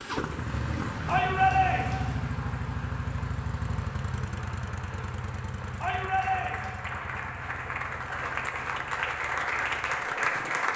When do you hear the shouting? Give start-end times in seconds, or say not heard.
1.1-2.1, 5.8-6.8.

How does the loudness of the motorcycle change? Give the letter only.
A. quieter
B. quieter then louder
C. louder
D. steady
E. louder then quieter
A.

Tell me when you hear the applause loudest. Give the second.
10 s.